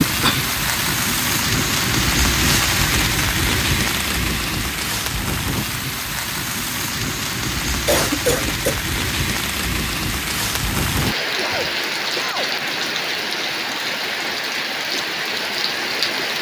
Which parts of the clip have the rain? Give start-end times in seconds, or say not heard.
0.0-16.3.